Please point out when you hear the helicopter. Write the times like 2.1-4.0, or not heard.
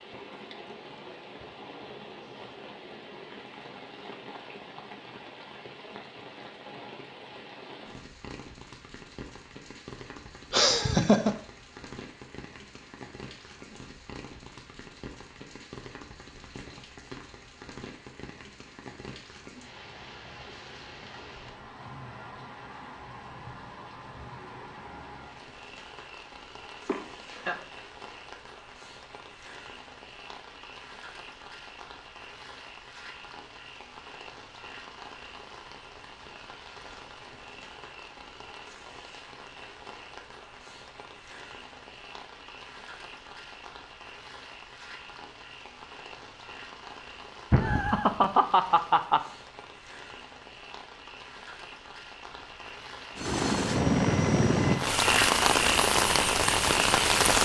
53.1-57.3.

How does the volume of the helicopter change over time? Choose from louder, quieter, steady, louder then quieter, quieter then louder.
quieter.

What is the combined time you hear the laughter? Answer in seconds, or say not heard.
3 s.